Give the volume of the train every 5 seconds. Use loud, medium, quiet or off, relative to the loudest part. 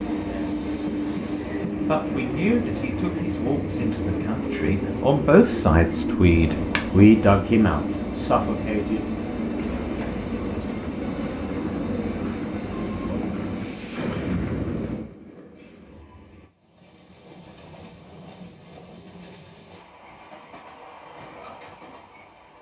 loud, loud, loud, quiet, quiet.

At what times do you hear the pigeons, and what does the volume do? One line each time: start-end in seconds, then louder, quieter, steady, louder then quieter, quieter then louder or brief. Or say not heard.
not heard.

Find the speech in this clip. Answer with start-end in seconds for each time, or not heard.
1.9-9.1.